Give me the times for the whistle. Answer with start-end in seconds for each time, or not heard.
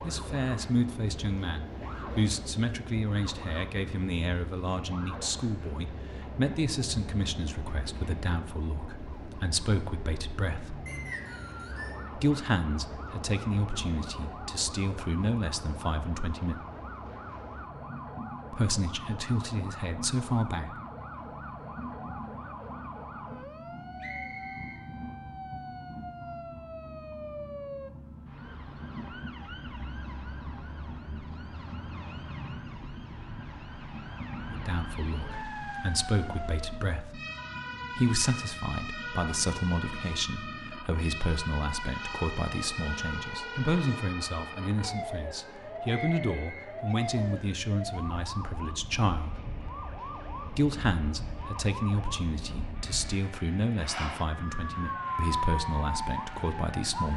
10.8-12.0, 24.0-24.8, 45.9-47.5.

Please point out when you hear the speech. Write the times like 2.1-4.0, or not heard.
0.0-10.8, 12.2-16.6, 18.5-20.8, 34.5-37.2, 37.9-49.4, 50.5-57.1.